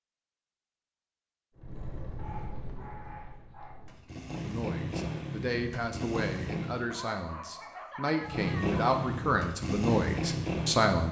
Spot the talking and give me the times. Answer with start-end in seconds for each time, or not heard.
4.4-11.0.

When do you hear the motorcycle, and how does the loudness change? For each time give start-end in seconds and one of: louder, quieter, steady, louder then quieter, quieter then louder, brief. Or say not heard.
1.6-6.9 quieter then louder
8.2-11.0 brief.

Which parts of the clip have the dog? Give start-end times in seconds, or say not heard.
2.1-3.8, 6.9-8.8.